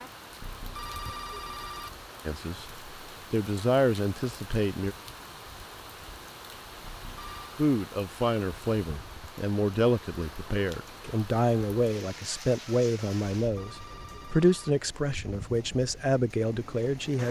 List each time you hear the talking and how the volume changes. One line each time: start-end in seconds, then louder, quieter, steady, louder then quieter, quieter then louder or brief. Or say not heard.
2.2-5.0 brief
7.5-17.2 steady.